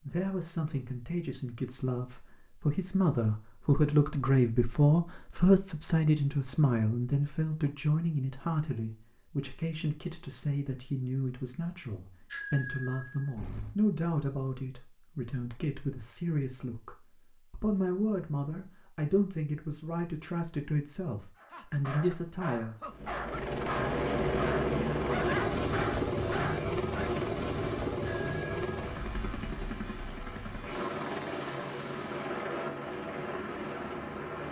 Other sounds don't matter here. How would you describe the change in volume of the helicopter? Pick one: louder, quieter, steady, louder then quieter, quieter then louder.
quieter.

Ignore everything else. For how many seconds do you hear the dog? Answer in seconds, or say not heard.
6 s.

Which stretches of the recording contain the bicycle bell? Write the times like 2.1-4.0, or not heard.
12.3-13.8, 28.0-29.6.